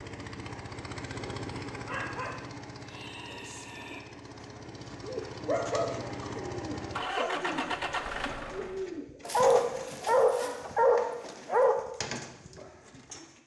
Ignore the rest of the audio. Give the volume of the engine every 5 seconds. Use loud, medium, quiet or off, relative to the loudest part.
medium, loud, off.